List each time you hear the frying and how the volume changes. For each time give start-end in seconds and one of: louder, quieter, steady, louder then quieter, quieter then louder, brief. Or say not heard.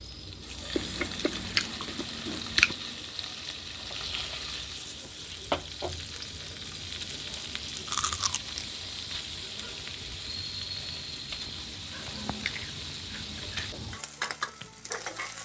0.0-15.4 steady.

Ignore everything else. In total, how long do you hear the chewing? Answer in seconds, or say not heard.
4 s.